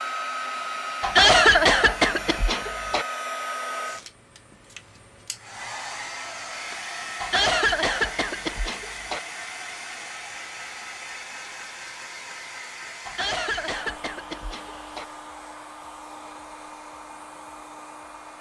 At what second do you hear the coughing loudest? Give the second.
1 s.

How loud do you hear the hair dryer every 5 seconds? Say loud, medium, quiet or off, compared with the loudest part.
loud, loud, medium, medium.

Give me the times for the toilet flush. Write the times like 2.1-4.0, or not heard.
not heard.